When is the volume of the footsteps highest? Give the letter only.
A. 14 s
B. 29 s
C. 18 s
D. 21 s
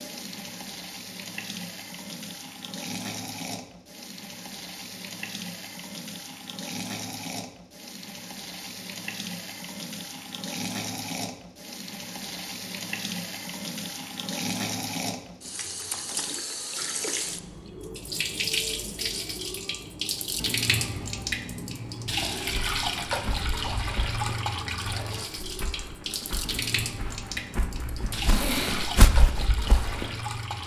B.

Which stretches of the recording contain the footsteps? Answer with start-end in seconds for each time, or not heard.
22.4-30.4.